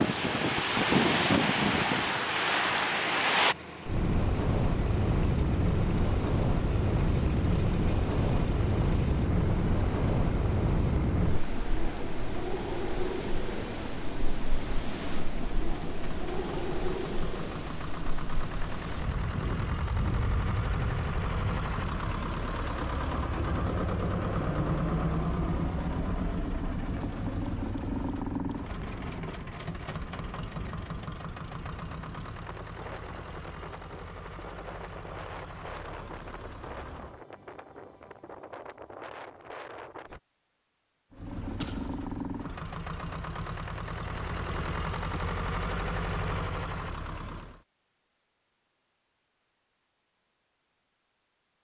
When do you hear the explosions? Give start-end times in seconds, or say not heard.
41.6-42.4.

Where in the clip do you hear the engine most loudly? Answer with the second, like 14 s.
25 s.